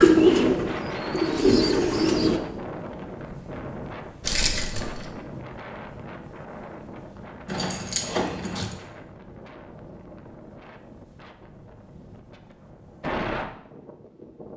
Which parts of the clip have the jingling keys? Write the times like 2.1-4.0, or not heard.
4.2-5.0, 7.5-8.8.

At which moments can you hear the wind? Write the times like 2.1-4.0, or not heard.
0.0-14.5.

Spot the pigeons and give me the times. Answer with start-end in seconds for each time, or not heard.
0.0-2.4.